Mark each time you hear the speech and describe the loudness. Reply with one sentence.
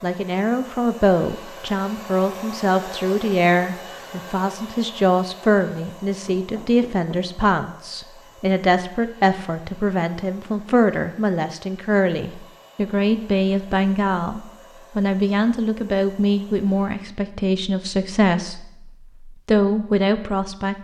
You can hear the speech from 0.0 to 20.7 s, at a steady volume.